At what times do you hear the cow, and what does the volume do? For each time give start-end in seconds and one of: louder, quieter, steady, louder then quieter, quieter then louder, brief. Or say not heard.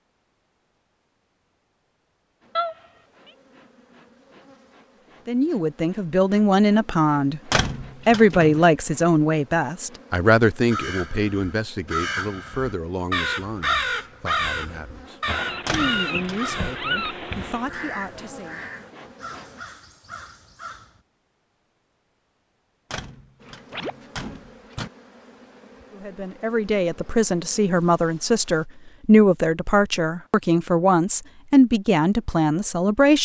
not heard.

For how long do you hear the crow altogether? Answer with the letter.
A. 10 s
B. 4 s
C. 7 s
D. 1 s
A.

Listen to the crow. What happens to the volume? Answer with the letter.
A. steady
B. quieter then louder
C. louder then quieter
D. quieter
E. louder
C.